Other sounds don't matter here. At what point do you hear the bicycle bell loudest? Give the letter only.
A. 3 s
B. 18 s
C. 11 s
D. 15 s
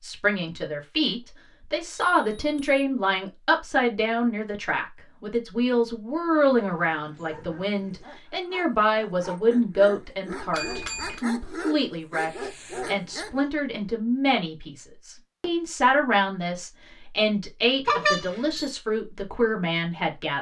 B.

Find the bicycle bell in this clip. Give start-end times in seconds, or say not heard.
2.1-2.8, 10.5-11.2, 17.9-18.8.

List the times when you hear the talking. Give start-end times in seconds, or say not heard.
0.0-20.3.